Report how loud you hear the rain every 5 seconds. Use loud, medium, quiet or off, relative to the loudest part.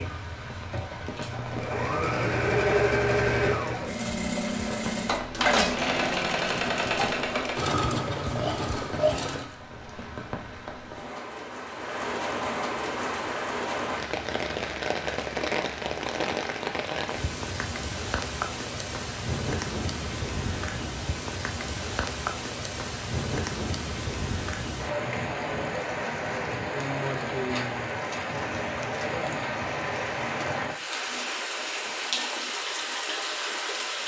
medium, medium, loud, loud, loud, loud, loud.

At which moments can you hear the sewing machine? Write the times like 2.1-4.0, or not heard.
0.0-9.5.